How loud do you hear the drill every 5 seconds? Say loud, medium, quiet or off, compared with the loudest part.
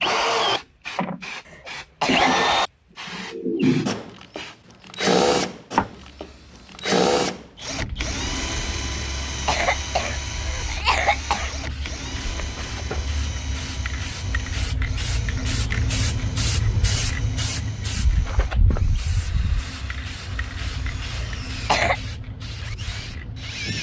loud, loud, quiet, quiet, quiet.